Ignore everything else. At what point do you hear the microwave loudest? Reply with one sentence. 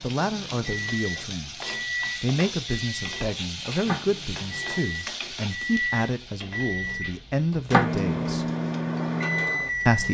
The volume of the microwave peaks at 8 seconds.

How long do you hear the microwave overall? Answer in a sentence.
The microwave can be heard for 10 seconds in total.